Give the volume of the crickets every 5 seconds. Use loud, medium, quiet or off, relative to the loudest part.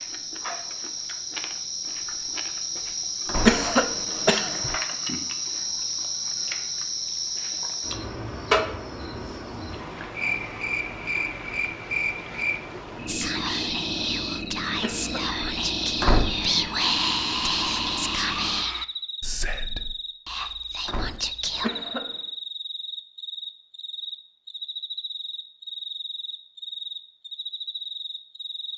loud, loud, loud, medium, medium, medium.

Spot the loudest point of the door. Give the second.
16 s.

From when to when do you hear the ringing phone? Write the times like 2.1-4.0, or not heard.
not heard.